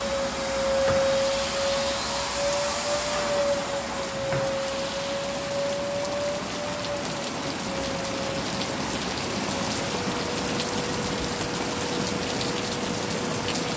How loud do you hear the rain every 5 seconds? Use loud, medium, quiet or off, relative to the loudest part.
medium, loud, loud.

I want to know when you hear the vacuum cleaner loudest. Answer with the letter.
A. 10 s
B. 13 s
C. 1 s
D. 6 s
C.